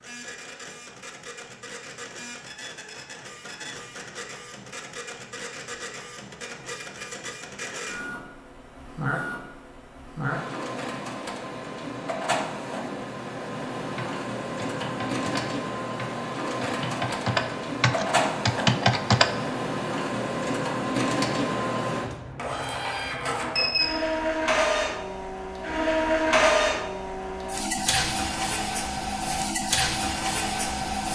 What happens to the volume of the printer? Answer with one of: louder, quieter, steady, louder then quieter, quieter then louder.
louder.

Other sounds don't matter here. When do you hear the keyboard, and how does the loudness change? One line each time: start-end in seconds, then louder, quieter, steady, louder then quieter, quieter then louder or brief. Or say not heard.
13.9-19.3 louder.